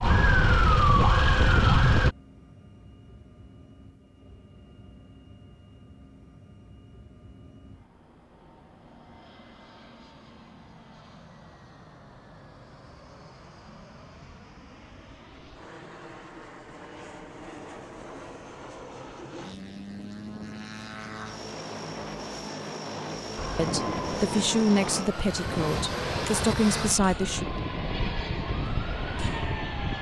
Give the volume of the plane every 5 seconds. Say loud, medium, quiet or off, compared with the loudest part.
quiet, quiet, quiet, medium, loud, loud.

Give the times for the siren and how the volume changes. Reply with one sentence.
The siren can be heard briefly from 0.0 to 2.1 s; and from 23.4 to 29.9 s, getting quieter.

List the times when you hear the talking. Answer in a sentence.
The talking can be heard from 23.6 to 27.4 s.